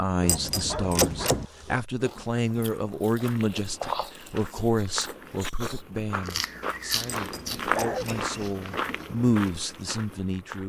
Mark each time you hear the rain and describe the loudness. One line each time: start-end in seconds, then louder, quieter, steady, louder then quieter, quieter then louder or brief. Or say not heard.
not heard.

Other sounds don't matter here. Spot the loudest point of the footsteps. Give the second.
8 s.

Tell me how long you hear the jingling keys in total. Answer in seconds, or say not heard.
2 s.